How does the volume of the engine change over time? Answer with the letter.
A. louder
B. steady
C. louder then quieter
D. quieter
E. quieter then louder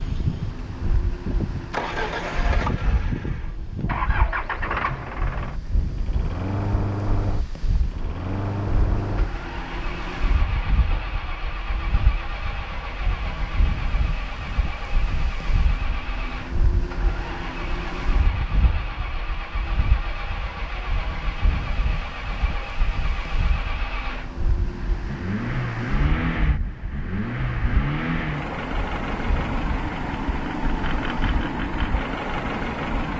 E.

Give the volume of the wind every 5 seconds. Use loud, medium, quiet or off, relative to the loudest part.
loud, loud, loud, loud, loud, loud, medium.